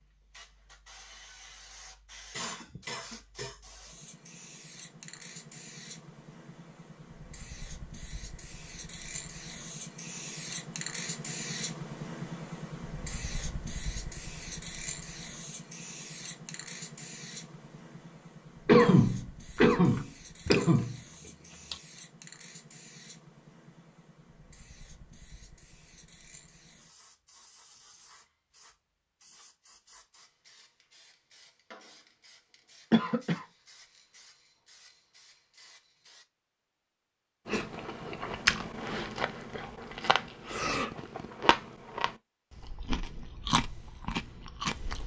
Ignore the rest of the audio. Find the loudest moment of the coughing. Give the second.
19 s.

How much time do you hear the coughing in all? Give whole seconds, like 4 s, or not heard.
4 s.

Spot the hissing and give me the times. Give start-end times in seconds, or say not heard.
0.0-36.2.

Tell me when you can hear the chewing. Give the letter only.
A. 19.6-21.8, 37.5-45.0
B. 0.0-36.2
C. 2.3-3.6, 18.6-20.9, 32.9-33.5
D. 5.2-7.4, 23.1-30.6
A.